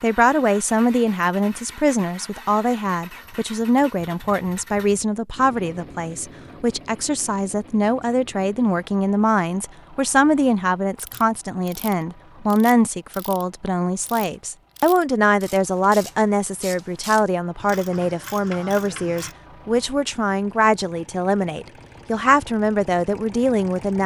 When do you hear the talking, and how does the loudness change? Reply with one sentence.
The talking can be heard from 0.0 to 24.0 s, at a steady volume.